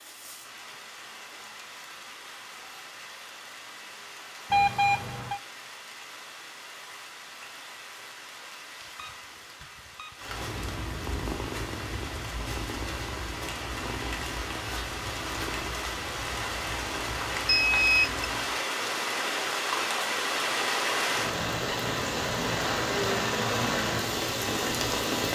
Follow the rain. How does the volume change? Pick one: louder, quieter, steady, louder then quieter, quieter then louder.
louder.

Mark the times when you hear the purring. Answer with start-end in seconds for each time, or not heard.
10.2-18.6.